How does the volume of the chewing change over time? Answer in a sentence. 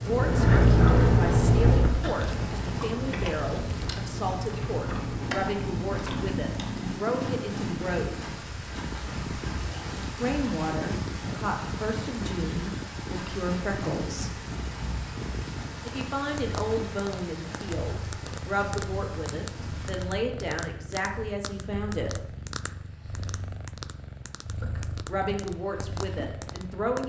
The volume of the chewing goes down.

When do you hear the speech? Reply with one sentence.
You can hear the speech from 0.0 to 8.3 s, from 10.2 to 14.4 s, from 15.8 to 22.1 s and from 24.6 to 27.0 s.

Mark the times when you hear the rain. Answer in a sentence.
The rain can be heard from 0.0 to 20.2 s.